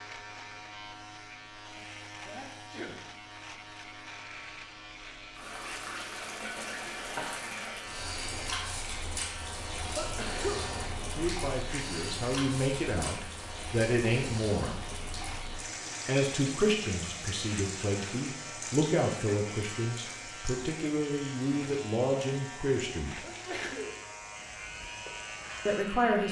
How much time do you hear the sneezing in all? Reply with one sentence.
You can hear the sneezing for 2 seconds altogether.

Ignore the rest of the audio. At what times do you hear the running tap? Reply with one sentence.
You can hear the running tap from 5.3 to 26.0 s.